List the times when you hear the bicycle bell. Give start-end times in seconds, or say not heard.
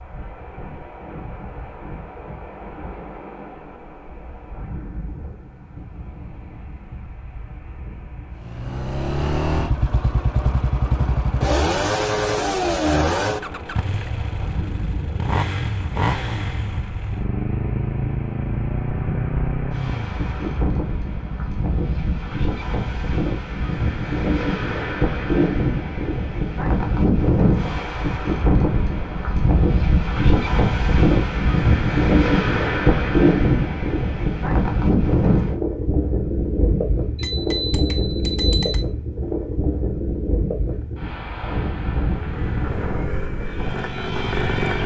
37.2-38.9.